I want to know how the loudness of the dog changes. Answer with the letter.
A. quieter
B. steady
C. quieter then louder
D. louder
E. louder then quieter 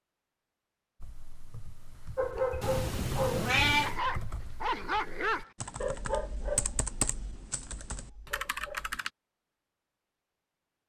A.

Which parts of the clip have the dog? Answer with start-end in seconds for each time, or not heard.
2.1-8.9.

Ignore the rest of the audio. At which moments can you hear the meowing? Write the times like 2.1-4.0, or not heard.
2.6-4.0.